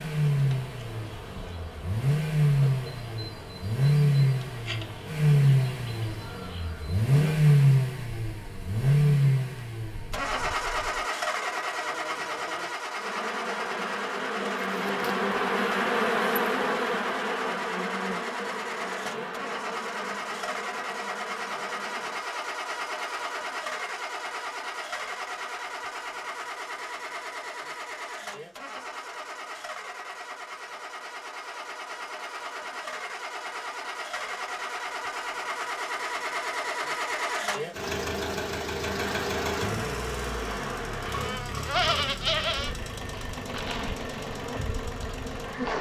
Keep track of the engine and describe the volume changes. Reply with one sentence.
The loudness of the engine goes down.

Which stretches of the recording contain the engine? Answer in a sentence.
The engine can be heard from 0.0 to 45.7 s.